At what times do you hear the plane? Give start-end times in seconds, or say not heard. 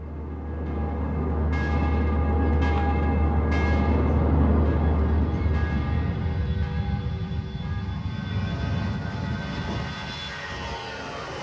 0.0-11.3.